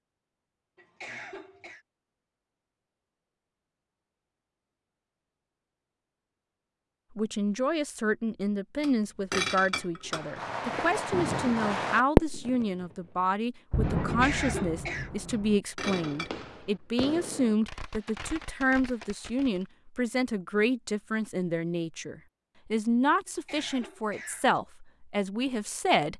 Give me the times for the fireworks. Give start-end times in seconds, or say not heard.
10.1-12.7, 13.7-19.6.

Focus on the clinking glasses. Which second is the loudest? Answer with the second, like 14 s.
9 s.